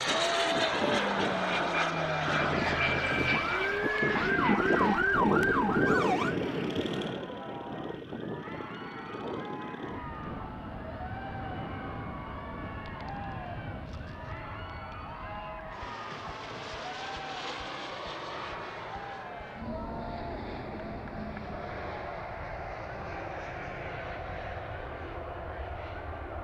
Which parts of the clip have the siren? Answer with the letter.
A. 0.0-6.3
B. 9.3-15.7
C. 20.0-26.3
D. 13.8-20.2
A.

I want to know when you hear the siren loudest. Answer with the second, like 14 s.
5 s.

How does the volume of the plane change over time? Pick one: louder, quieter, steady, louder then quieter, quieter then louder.
quieter.